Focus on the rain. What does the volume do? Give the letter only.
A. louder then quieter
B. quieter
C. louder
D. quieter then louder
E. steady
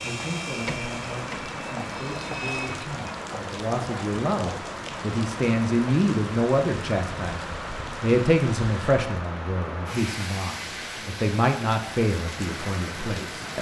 E.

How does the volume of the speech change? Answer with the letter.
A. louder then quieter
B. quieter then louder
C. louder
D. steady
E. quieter
C.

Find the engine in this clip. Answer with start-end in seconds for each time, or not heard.
0.0-2.9.